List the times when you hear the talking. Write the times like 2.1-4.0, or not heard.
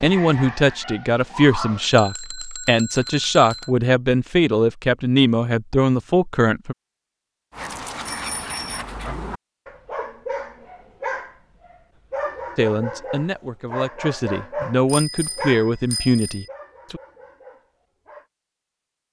0.0-6.8, 12.6-17.0.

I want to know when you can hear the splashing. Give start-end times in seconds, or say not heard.
not heard.